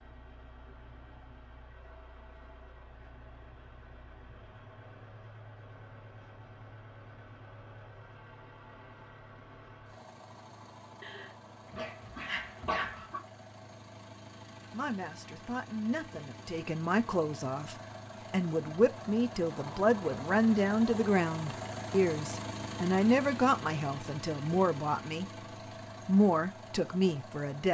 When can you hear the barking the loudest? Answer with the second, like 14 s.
13 s.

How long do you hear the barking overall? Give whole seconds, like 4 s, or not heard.
2 s.